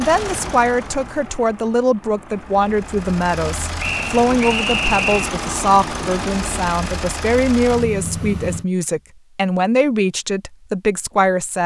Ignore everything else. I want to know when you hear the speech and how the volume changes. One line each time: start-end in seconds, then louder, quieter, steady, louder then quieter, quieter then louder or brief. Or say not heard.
0.0-11.6 steady.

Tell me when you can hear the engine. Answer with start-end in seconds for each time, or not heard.
0.0-8.7.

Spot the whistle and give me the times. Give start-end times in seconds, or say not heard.
3.8-5.3.